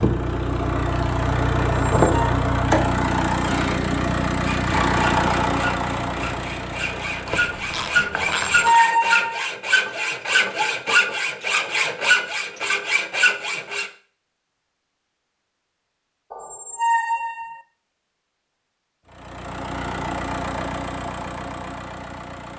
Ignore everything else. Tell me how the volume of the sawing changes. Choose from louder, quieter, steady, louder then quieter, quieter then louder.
louder.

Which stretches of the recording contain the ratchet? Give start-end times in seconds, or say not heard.
7.2-8.8.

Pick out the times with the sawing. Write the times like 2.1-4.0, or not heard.
4.4-13.9.